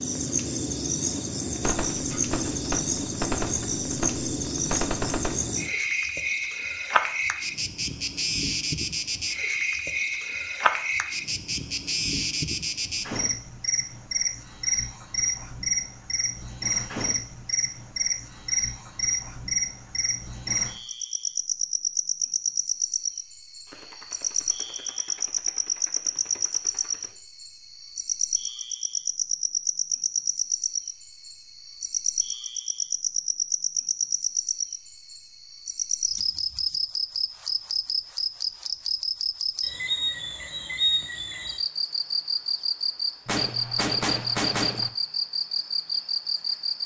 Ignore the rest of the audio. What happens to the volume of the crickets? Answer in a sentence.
The loudness of the crickets stays about the same.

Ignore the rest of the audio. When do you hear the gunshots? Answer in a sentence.
You can hear the gunshots from 1.6 to 5.5 s, from 23.6 to 27.1 s and from 43.2 to 44.9 s.